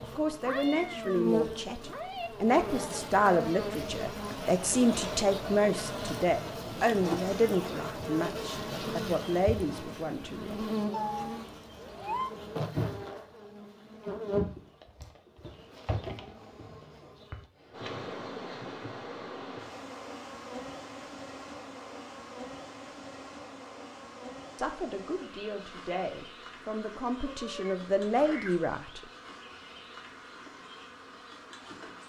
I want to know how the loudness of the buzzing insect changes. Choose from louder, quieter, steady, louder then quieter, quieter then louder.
quieter.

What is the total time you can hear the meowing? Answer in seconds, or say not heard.
5 s.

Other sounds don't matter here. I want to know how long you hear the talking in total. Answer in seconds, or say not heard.
15 s.